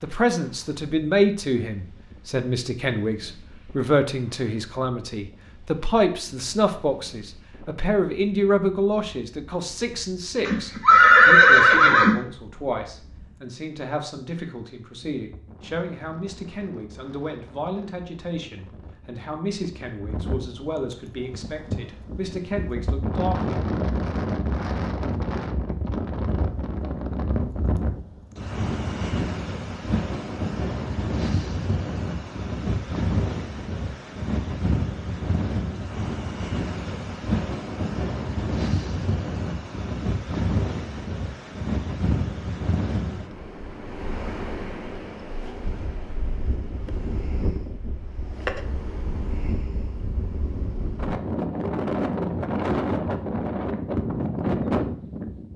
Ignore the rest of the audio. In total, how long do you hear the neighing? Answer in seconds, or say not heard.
2 s.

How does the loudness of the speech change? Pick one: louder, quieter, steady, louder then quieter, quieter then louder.
quieter.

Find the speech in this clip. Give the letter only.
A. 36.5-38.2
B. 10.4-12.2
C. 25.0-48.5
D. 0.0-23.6
D.